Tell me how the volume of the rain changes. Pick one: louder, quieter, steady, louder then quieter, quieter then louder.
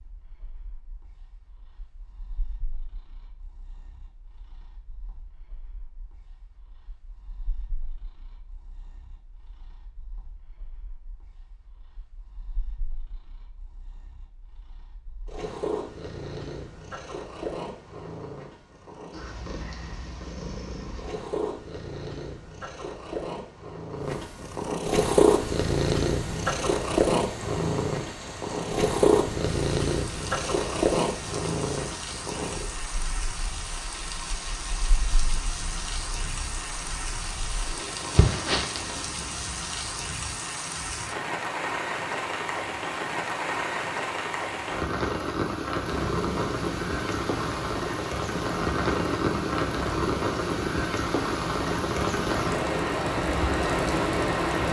louder.